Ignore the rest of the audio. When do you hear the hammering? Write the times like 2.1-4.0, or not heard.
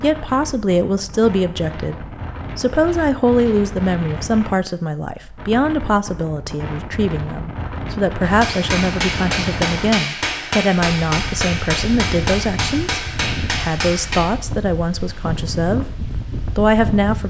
8.2-14.3.